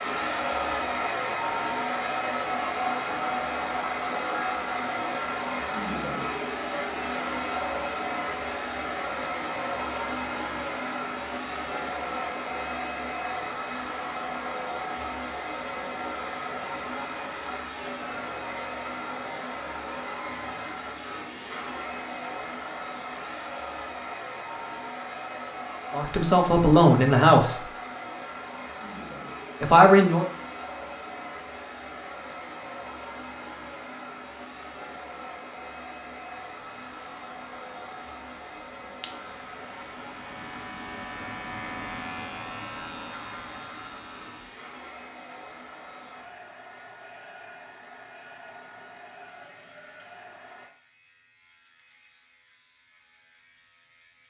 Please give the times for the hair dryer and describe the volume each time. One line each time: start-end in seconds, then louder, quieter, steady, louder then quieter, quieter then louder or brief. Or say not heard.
0.0-50.7 quieter.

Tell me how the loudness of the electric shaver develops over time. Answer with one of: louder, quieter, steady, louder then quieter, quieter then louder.
louder then quieter.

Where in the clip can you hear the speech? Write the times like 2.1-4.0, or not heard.
25.9-27.6, 29.6-30.2.